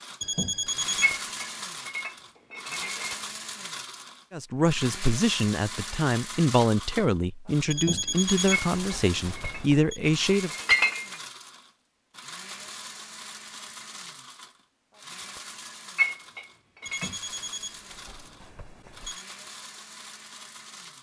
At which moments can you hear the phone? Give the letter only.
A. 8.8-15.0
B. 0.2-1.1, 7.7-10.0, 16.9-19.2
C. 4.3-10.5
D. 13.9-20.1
B.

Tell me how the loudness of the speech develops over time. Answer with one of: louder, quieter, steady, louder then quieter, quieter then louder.
steady.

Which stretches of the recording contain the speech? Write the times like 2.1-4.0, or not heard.
4.3-10.5.